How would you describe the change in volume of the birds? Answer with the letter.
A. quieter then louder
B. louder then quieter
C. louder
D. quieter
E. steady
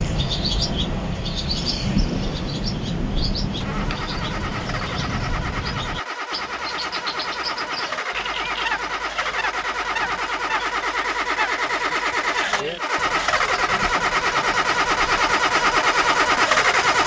D.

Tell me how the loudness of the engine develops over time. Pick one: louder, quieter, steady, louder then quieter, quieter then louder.
louder.